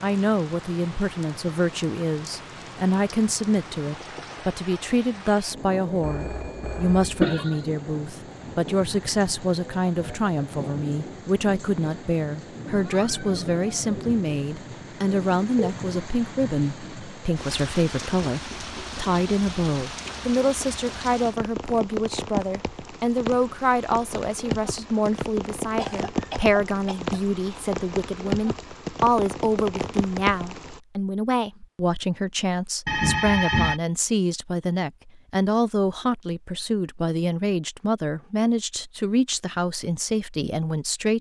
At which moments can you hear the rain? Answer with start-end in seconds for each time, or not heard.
0.0-30.8.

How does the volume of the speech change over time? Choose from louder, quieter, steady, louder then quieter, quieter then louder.
steady.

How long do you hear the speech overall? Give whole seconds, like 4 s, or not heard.
41 s.